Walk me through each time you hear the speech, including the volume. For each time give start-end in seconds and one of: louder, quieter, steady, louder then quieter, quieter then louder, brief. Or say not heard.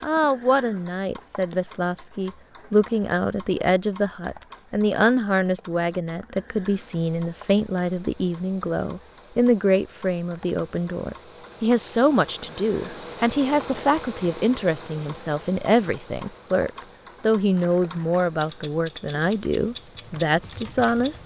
0.0-21.2 steady.